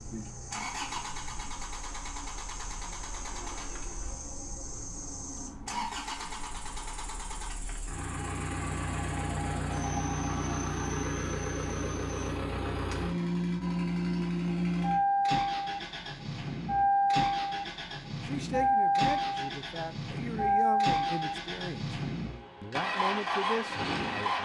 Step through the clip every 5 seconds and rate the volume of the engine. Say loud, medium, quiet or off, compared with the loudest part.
quiet, medium, loud, loud, loud.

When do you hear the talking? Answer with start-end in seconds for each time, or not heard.
18.2-21.9, 22.6-24.4.